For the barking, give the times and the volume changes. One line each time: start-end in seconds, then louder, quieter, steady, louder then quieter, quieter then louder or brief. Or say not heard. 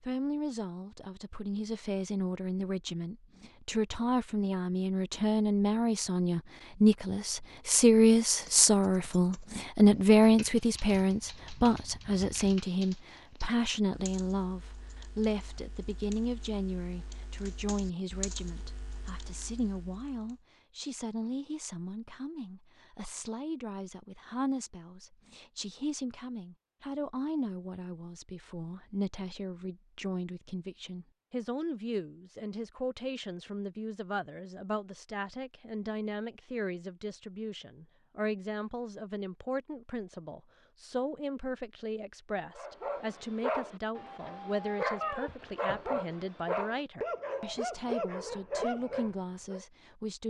42.5-49.6 steady.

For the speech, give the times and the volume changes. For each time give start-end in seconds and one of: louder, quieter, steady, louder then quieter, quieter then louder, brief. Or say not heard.
0.0-50.2 quieter.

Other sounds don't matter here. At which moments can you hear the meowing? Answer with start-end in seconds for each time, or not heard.
45.0-46.0.